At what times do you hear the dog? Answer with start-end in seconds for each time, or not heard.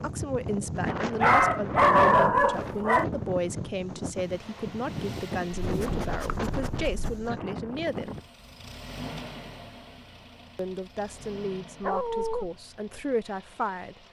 1.2-3.0, 5.6-7.3, 11.8-12.5.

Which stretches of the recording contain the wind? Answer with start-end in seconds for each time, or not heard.
0.0-8.2.